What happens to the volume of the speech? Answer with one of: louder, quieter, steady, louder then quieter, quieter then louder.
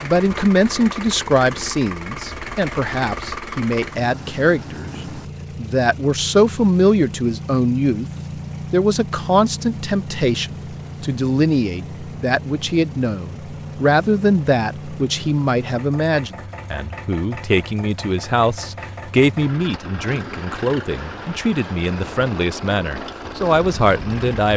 steady.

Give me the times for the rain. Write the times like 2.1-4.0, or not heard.
not heard.